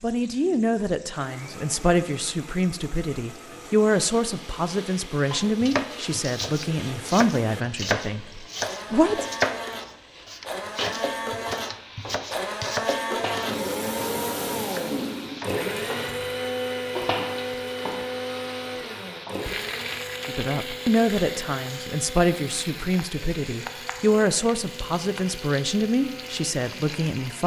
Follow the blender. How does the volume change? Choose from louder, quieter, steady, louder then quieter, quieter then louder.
louder then quieter.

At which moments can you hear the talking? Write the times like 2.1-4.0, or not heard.
0.0-9.2, 20.2-27.4.